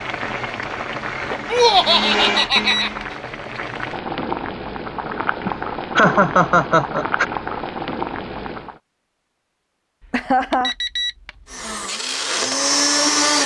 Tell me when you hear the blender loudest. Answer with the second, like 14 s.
13 s.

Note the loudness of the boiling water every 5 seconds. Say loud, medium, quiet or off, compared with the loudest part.
loud, loud, off.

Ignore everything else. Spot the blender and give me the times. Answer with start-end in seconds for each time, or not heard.
0.0-3.2, 11.4-13.4.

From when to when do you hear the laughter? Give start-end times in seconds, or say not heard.
1.5-2.9, 5.5-7.2, 10.1-10.8.